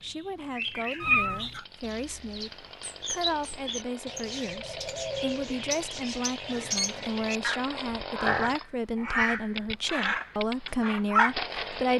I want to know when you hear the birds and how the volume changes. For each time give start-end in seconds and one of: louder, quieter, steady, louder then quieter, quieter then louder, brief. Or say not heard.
0.0-11.3 louder.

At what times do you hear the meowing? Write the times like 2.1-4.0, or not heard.
1.0-1.6.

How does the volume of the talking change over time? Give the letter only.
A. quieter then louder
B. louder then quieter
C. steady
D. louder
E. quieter
D.